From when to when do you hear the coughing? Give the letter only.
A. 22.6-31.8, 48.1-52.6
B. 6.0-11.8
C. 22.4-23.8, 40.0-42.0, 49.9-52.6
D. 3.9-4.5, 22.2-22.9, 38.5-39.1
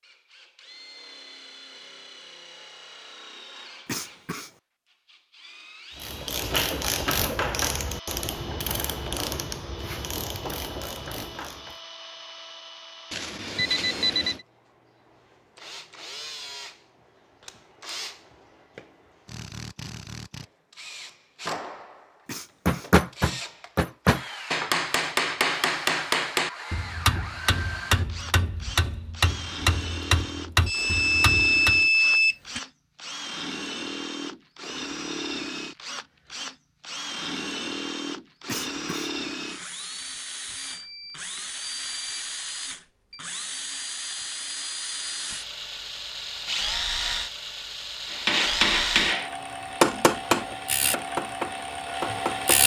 D.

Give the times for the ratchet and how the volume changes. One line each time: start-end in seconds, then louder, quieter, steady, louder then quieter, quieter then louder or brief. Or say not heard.
6.0-11.8 quieter.